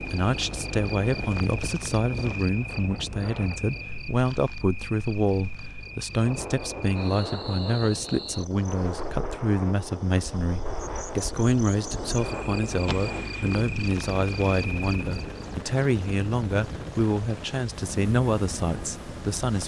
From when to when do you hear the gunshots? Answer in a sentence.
The gunshots can be heard from 12.8 to 13.6 s.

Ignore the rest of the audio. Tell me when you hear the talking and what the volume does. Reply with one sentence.
You can hear the talking from 0.1 to 19.6 s, at a steady volume.